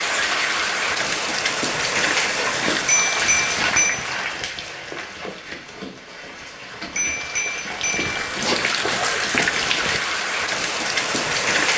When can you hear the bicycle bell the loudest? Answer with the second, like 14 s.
3 s.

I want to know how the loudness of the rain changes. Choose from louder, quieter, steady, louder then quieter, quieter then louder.
quieter then louder.